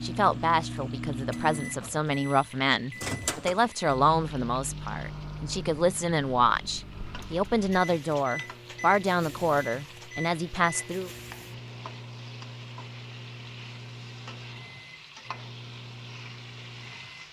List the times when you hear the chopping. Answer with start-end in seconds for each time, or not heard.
not heard.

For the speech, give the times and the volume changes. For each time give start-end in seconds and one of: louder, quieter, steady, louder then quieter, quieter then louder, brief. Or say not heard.
0.0-11.1 steady.